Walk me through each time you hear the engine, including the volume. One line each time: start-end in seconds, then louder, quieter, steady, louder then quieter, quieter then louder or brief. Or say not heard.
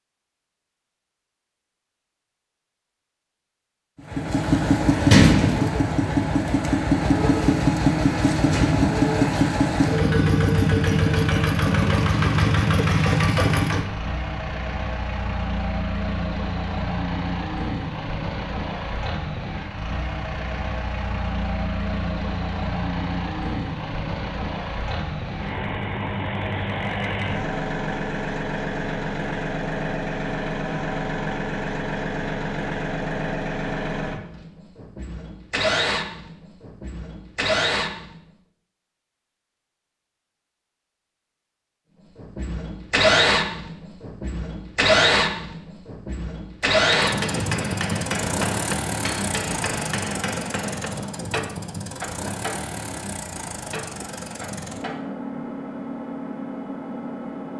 4.0-38.1 quieter
42.1-57.5 quieter.